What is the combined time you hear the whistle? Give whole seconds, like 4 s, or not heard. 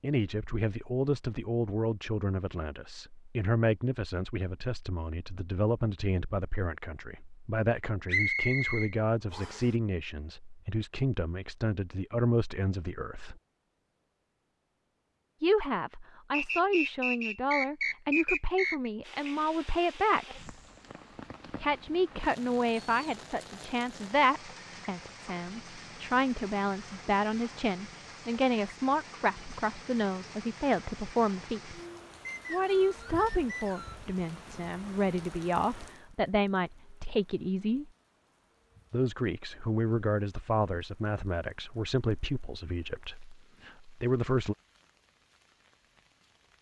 6 s.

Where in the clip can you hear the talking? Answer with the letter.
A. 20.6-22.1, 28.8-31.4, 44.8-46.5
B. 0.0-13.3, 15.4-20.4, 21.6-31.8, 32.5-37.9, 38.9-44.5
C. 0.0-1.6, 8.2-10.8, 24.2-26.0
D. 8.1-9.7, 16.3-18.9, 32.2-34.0
B.